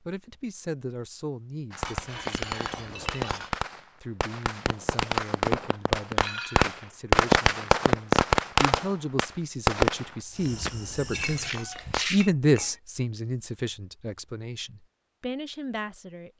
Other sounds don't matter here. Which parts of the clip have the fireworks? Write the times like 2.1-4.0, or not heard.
1.7-12.1.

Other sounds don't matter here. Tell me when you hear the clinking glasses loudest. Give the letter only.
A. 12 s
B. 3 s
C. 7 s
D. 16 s
A.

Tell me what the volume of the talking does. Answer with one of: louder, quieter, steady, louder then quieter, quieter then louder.
louder then quieter.